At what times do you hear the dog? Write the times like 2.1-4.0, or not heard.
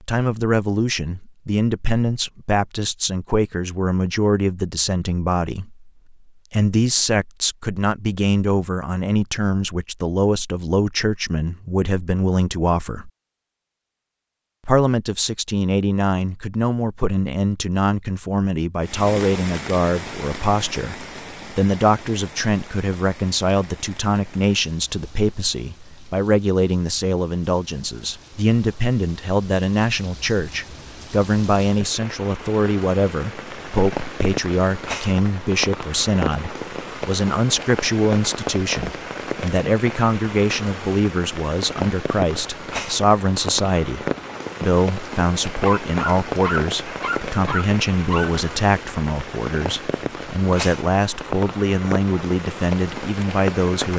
45.6-48.4.